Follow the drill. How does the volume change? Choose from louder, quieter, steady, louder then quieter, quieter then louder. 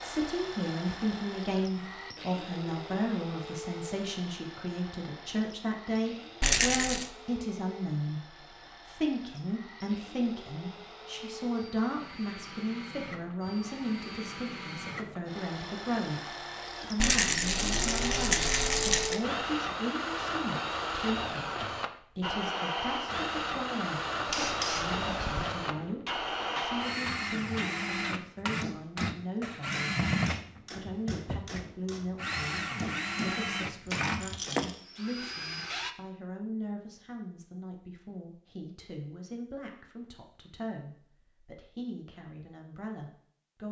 louder.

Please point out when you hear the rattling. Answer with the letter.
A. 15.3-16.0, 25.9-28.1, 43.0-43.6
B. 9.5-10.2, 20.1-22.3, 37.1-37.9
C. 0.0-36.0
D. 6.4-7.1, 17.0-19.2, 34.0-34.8
D.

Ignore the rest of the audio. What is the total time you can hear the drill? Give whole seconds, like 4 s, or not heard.
36 s.